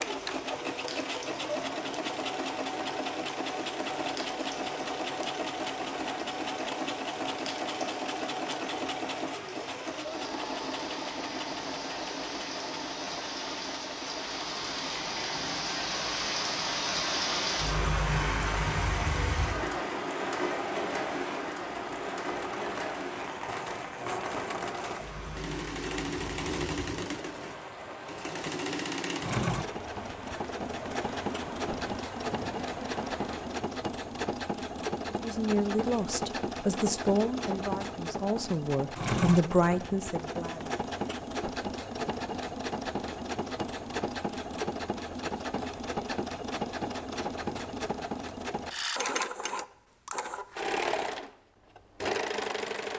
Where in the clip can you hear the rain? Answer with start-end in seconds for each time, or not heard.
0.0-33.6.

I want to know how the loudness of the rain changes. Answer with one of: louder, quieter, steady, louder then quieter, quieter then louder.
louder then quieter.